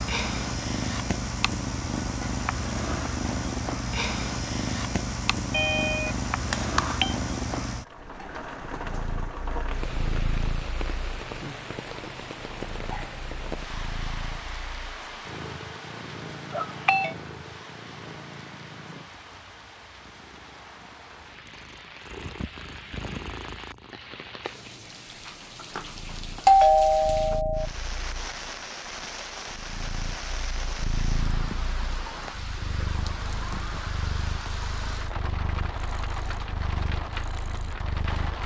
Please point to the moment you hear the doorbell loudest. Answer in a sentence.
The volume of the doorbell peaks at 27 seconds.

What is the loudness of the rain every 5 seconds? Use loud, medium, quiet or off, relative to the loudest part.
off, loud, loud, medium, medium, loud, loud, loud.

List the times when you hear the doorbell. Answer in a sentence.
You can hear the doorbell from 5.5 to 7.2 s, from 16.5 to 17.1 s and from 26.4 to 27.6 s.